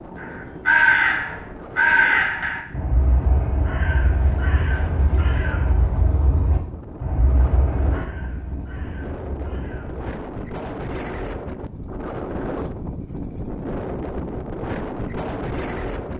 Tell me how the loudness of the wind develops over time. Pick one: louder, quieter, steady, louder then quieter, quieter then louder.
louder.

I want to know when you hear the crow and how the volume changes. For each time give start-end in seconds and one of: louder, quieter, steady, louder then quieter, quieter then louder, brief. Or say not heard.
0.0-10.1 quieter.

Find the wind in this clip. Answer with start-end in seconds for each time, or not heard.
0.0-16.1.